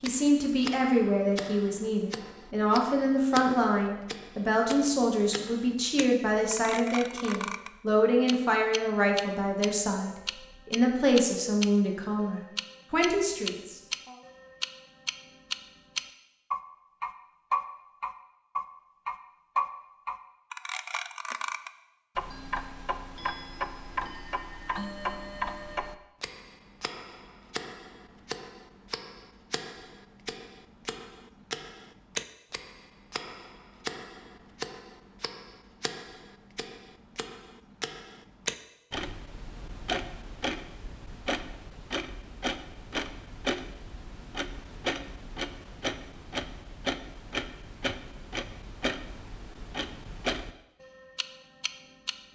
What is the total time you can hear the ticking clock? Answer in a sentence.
The ticking clock can be heard for 52 seconds in total.